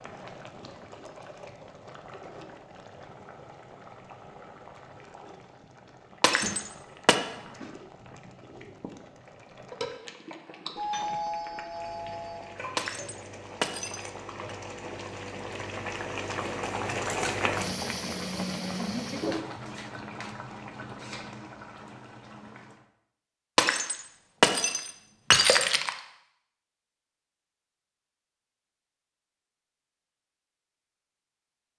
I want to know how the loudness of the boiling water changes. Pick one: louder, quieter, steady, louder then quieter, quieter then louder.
louder.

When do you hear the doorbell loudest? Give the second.
11 s.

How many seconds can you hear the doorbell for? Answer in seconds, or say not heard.
2 s.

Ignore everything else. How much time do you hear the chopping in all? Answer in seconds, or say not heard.
not heard.